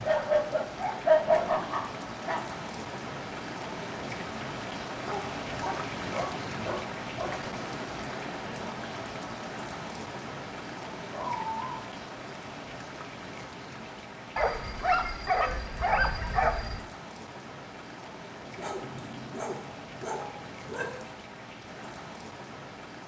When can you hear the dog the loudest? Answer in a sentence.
The loudest moment of the dog is at 1 second.